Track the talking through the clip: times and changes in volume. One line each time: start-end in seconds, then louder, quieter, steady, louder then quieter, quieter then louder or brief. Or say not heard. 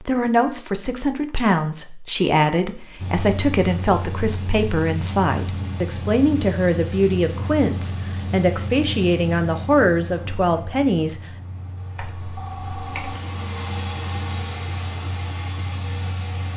0.0-11.2 steady.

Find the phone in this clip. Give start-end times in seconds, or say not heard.
11.9-13.2.